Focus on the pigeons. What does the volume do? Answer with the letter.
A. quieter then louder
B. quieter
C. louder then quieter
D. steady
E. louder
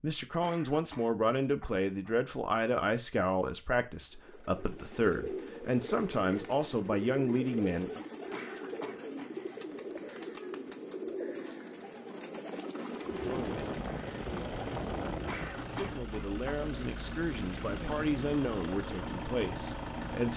D.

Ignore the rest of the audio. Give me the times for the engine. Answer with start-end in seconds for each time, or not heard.
13.1-20.3.